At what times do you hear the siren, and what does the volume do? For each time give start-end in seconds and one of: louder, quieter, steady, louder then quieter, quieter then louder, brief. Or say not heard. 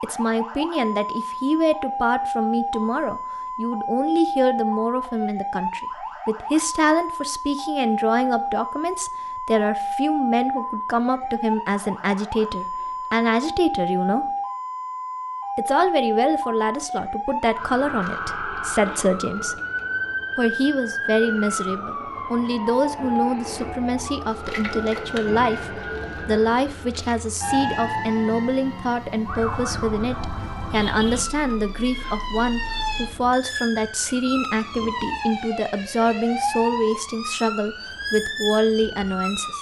0.0-39.5 steady.